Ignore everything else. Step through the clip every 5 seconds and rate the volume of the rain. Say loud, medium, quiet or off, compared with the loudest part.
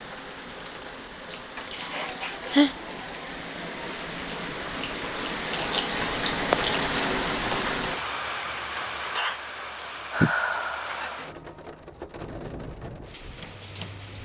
medium, loud, medium.